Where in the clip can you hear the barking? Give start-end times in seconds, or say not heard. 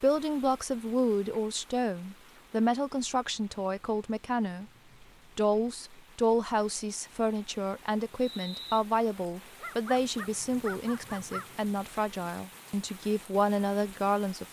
9.6-11.5.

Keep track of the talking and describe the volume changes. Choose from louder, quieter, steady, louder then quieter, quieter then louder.
steady.